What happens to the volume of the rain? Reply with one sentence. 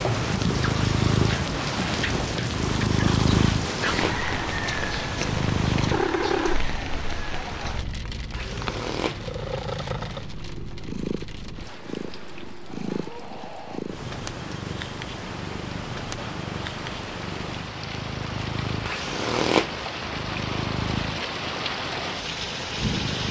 The loudness of the rain goes down, then up.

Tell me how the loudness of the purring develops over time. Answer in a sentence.
The volume of the purring goes down.